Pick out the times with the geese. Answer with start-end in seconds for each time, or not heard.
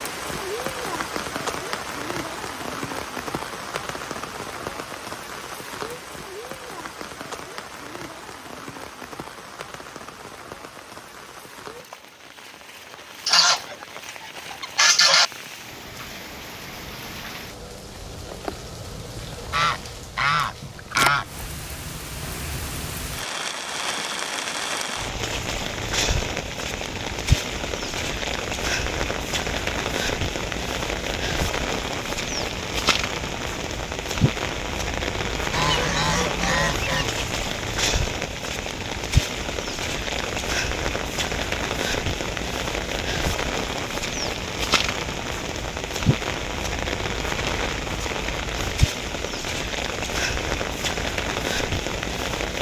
13.2-13.8, 14.5-15.2, 19.5-21.2, 35.5-37.1.